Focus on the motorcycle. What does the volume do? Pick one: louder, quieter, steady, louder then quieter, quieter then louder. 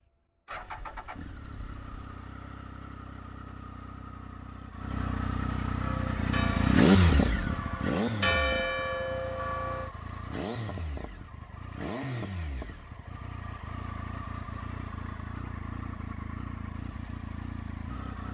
louder then quieter.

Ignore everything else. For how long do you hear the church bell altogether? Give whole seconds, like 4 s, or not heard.
4 s.